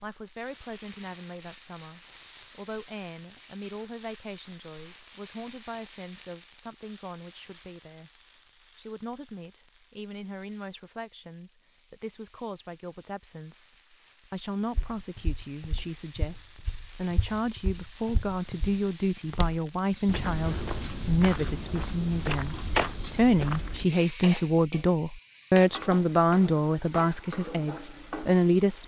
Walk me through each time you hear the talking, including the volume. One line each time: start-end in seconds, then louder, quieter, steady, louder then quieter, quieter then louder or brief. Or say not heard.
0.0-8.1 steady
8.8-28.8 louder.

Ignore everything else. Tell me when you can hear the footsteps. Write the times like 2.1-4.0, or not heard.
14.8-23.9.